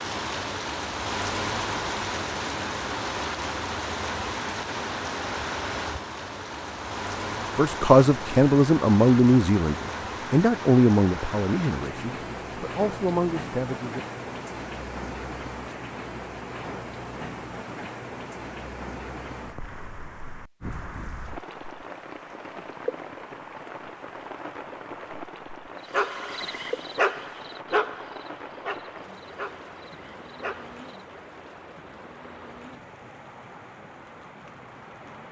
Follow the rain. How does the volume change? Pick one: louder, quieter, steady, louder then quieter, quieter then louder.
quieter.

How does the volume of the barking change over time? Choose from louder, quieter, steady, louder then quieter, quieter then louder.
quieter.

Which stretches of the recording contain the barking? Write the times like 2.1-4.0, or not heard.
25.9-31.1.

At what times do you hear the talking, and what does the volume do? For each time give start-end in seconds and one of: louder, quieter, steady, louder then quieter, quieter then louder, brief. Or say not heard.
7.5-14.1 quieter.